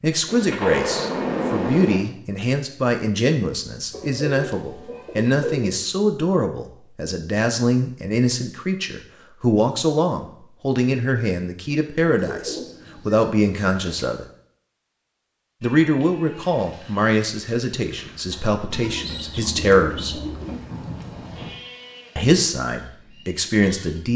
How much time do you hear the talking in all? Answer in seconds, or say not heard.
21 s.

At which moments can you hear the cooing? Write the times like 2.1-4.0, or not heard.
3.9-5.8, 12.1-14.1, 18.6-20.6.